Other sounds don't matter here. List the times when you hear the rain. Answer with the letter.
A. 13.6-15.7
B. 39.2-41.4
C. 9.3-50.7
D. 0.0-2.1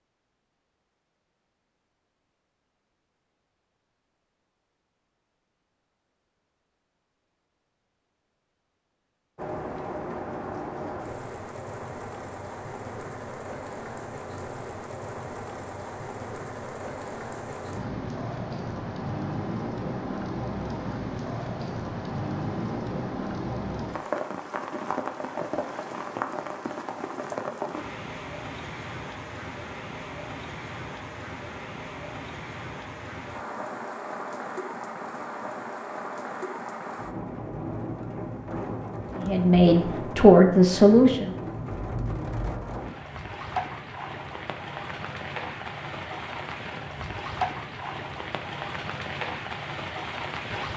C.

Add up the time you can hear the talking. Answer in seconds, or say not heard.
2 s.